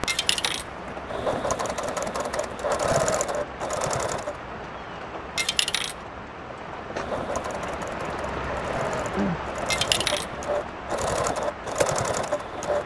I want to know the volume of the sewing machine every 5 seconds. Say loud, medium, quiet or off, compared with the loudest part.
loud, medium, loud.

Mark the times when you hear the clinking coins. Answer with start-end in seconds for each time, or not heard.
0.1-0.7, 5.3-6.0, 9.7-10.3.